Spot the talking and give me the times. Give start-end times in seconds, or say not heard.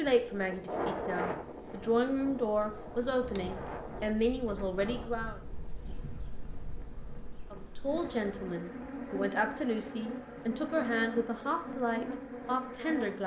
0.0-5.4, 7.5-13.2.